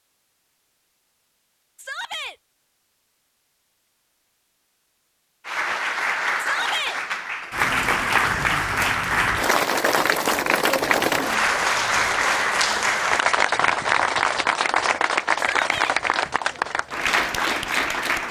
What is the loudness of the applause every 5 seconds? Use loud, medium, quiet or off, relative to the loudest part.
off, loud, loud, loud.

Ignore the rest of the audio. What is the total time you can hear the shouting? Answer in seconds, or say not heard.
2 s.